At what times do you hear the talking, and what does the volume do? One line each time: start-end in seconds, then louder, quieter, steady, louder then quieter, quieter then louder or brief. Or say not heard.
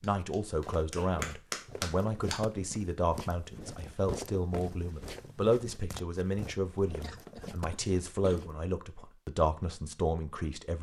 0.0-10.7 steady.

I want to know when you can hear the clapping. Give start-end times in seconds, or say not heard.
0.0-2.4.